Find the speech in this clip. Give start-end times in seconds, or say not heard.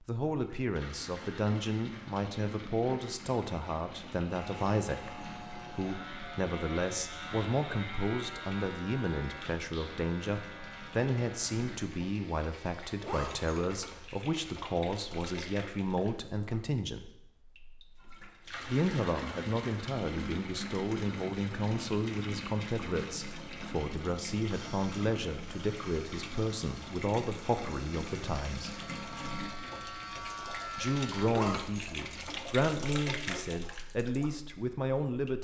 0.0-17.1, 18.6-28.8, 30.8-35.4.